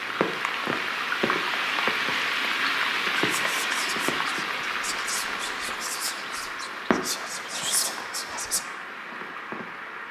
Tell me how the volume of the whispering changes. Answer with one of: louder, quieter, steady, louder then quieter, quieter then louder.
louder.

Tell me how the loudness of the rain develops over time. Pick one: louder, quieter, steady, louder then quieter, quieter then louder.
quieter.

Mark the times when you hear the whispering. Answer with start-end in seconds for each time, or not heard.
3.1-8.7.